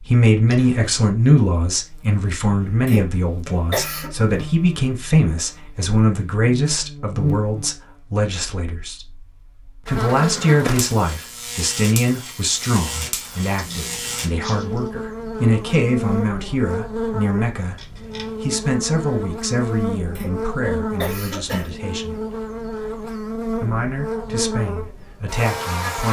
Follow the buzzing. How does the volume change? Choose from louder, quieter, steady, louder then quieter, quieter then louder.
louder.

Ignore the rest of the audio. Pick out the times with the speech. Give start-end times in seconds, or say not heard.
0.0-9.1, 9.8-22.1, 23.6-26.0.